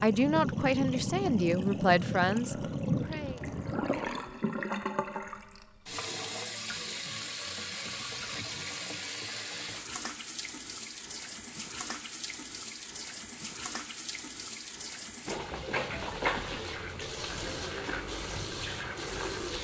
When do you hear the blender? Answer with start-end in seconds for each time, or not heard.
not heard.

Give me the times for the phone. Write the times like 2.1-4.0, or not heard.
not heard.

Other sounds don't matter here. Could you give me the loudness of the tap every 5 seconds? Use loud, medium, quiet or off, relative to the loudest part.
loud, medium, medium, loud.